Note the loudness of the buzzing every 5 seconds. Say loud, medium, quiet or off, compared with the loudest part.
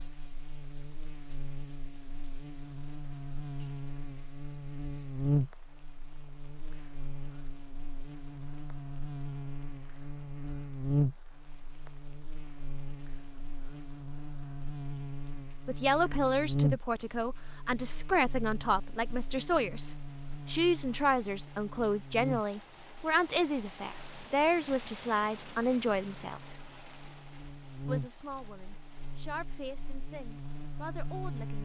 medium, loud, loud, loud, medium, medium, loud.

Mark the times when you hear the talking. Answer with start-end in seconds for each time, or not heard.
15.7-26.6, 27.9-31.6.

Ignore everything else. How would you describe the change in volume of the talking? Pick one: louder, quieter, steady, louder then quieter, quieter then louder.
quieter.